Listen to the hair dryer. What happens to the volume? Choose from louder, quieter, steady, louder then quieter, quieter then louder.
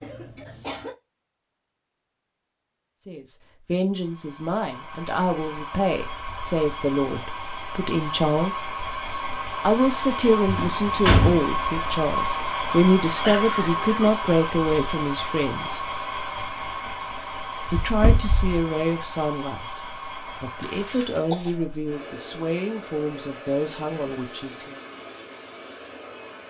louder then quieter.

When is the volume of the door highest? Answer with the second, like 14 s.
11 s.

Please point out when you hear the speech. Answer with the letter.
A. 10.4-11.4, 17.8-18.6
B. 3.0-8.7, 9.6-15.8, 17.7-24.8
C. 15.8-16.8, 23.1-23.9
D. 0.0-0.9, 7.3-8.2
B.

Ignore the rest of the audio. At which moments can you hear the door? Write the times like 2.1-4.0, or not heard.
10.4-11.4, 17.8-18.6.